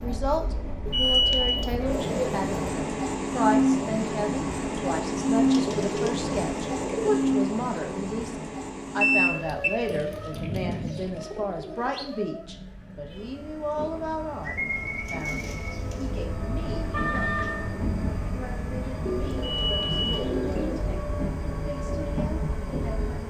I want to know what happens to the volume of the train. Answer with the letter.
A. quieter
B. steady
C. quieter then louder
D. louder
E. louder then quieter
C.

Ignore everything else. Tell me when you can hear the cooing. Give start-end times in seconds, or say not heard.
0.8-2.7, 5.5-7.2, 9.9-12.1, 14.4-16.2, 19.1-21.0.